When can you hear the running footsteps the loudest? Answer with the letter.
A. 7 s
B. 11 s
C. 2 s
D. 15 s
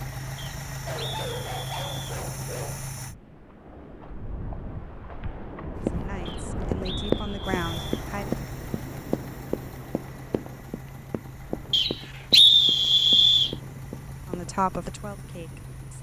A.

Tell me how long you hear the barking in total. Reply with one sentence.
The barking can be heard for 2 seconds in total.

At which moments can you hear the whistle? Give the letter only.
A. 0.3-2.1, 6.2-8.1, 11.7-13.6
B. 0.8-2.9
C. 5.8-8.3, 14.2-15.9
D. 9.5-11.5
A.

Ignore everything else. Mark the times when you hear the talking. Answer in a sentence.
The talking can be heard from 5.8 to 8.3 s and from 14.2 to 15.9 s.